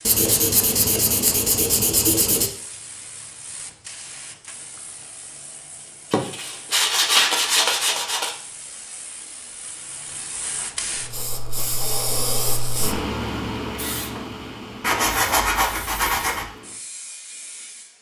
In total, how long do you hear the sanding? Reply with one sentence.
The sanding can be heard for 6 seconds in total.